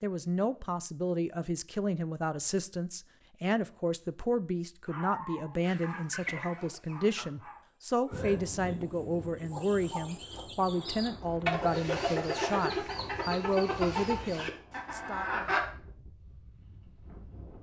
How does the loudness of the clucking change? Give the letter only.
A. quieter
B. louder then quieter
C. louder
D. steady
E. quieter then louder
C.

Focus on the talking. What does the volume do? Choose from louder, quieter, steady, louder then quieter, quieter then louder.
steady.